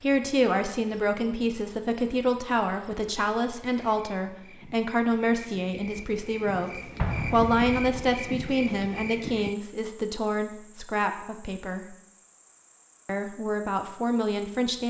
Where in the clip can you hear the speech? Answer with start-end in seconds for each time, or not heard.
0.0-11.9, 13.1-14.8.